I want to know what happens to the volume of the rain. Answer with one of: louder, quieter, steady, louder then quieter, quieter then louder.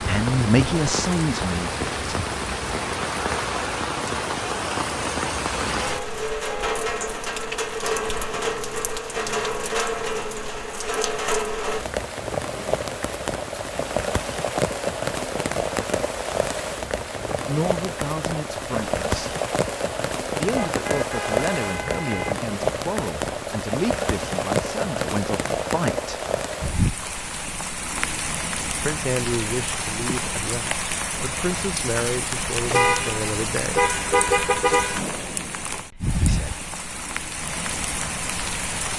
steady.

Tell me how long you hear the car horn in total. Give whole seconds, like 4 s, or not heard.
5 s.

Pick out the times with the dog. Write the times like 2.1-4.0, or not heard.
not heard.